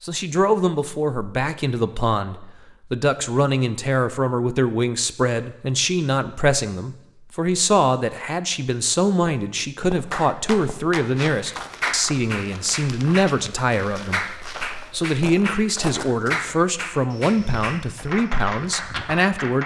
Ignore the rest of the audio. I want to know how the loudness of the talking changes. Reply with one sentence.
The loudness of the talking stays about the same.